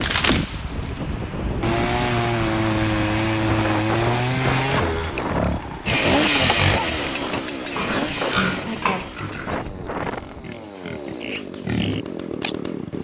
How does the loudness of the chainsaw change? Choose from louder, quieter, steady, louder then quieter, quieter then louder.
quieter.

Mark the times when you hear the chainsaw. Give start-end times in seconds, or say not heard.
0.0-12.9.